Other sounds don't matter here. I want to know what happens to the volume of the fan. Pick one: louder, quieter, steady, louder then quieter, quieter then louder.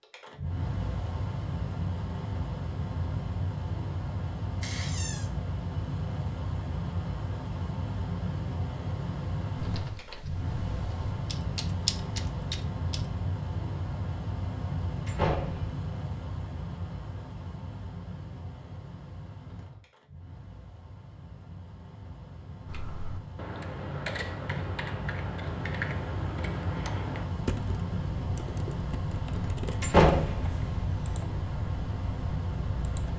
quieter then louder.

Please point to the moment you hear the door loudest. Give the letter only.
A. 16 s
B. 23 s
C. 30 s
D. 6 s
C.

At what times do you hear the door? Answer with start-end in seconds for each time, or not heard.
4.6-5.2, 15.1-15.8, 29.8-30.6.